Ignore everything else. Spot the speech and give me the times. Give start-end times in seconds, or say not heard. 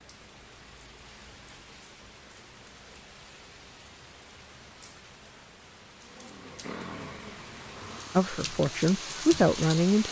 8.2-10.0.